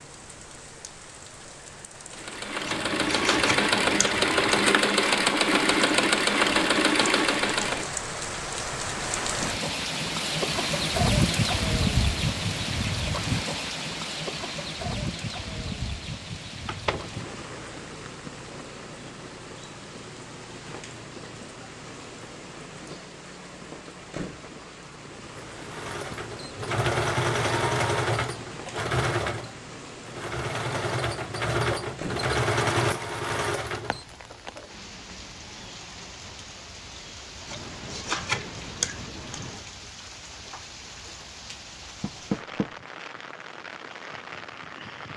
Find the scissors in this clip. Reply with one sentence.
You can hear the scissors from 2.6 to 4.7 s and from 37.5 to 39.5 s.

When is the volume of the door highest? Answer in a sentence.
The loudest moment of the door is at 42 seconds.